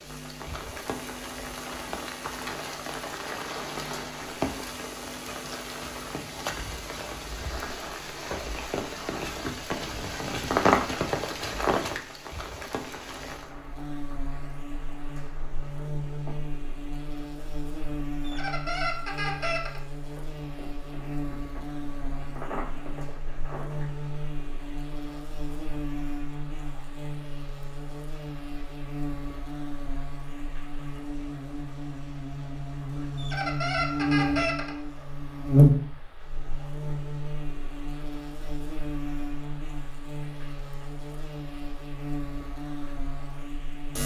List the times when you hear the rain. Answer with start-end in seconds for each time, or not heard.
0.0-44.0.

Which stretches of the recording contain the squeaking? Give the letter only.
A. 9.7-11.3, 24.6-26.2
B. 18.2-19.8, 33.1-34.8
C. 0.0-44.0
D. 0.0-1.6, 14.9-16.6
B.